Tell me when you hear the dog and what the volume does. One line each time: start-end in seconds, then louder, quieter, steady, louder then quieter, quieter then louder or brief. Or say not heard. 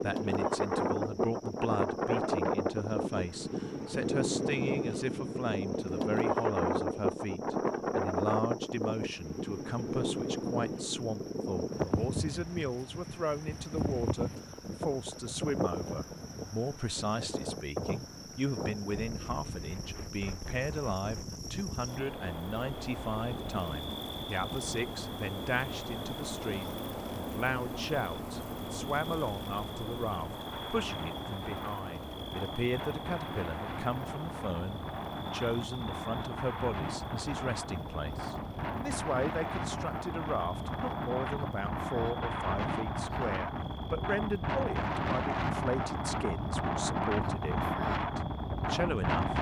not heard.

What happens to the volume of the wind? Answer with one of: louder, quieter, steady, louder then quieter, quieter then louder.
quieter then louder.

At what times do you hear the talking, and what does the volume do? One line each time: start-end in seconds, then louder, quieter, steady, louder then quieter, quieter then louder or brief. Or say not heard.
0.0-49.3 steady.